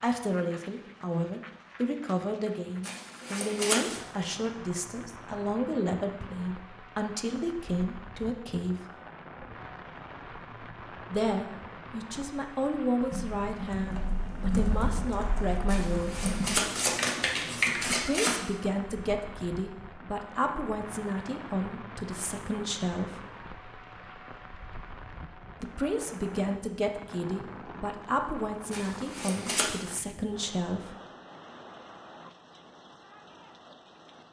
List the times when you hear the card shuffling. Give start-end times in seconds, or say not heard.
2.8-4.0, 15.7-18.4, 28.7-29.7.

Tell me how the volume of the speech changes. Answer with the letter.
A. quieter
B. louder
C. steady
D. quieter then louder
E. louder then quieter
C.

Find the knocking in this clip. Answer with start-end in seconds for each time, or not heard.
not heard.